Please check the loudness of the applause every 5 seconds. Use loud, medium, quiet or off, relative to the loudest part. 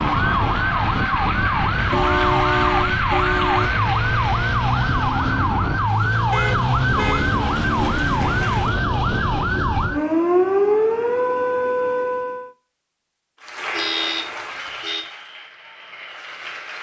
loud, medium, loud, medium.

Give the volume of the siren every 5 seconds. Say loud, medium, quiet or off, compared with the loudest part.
loud, loud, loud, off.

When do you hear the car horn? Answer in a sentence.
The car horn can be heard from 1.9 to 3.7 s, from 6.3 to 7.3 s and from 13.7 to 15.1 s.